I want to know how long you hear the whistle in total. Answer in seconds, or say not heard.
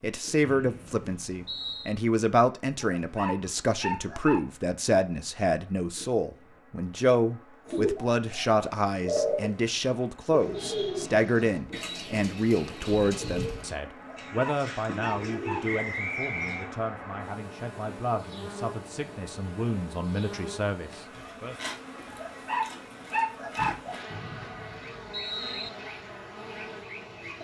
4 s.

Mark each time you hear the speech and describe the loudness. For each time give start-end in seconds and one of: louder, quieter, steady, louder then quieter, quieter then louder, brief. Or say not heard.
0.0-21.6 quieter.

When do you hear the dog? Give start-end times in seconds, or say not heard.
3.0-4.4, 13.9-15.8, 22.1-24.0.